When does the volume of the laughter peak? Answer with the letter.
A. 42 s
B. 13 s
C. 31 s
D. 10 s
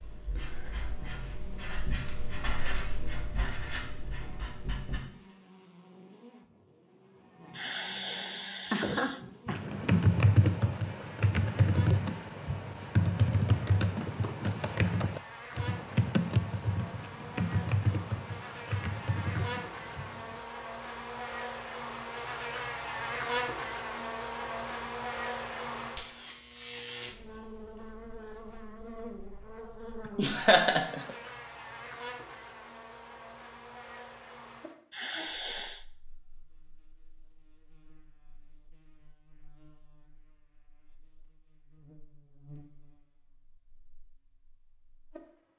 C.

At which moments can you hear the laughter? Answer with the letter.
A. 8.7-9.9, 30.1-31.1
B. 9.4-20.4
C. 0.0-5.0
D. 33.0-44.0
A.